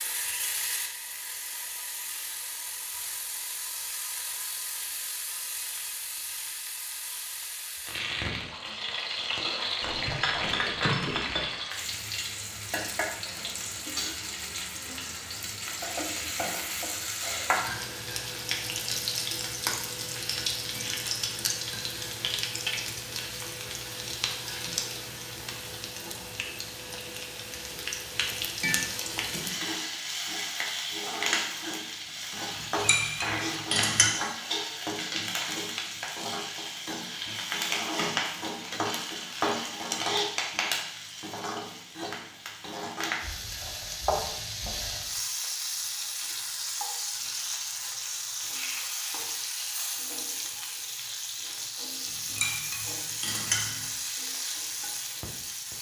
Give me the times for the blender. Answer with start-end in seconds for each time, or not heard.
not heard.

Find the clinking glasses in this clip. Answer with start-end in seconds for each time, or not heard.
9.8-11.4, 32.5-34.1, 52.0-53.9.